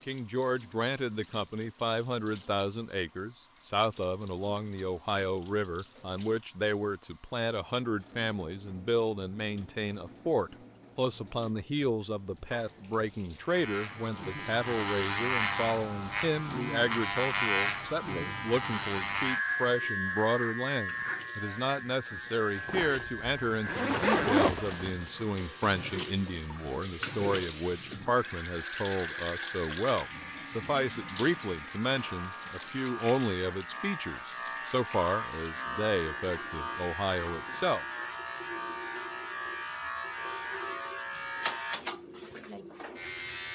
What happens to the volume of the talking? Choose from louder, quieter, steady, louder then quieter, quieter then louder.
steady.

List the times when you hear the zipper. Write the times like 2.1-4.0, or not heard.
22.6-25.2.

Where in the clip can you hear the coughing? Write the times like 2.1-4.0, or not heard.
not heard.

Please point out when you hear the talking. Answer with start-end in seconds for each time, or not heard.
0.1-37.9.